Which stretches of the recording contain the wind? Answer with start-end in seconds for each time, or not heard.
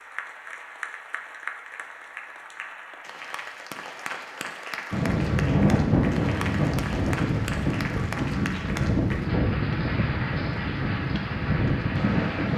4.9-12.5.